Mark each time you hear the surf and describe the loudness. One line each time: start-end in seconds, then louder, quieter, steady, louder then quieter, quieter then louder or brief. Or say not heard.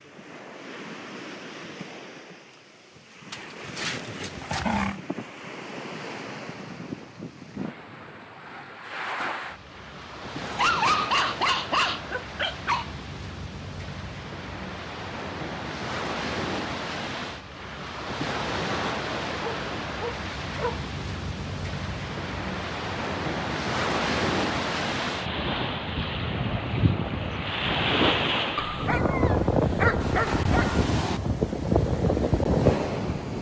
0.0-33.3 louder.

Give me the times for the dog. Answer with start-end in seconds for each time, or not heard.
3.3-5.0, 10.4-12.8, 19.4-20.8, 28.6-30.9.